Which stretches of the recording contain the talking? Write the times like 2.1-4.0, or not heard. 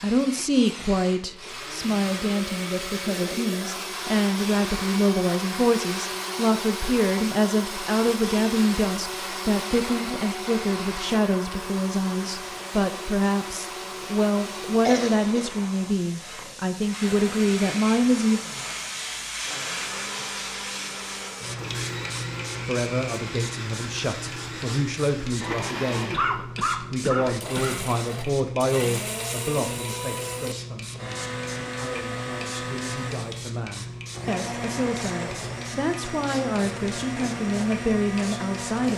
0.0-18.4, 22.6-26.1, 26.9-38.9.